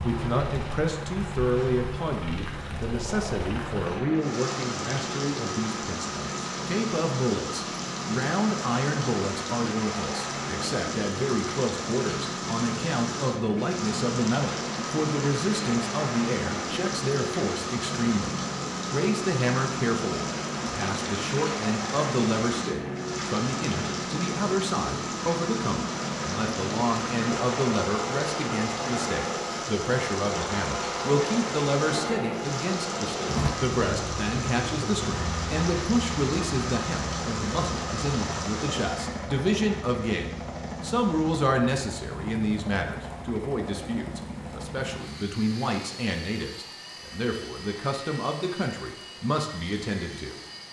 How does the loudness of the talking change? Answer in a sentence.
The volume of the talking stays about the same.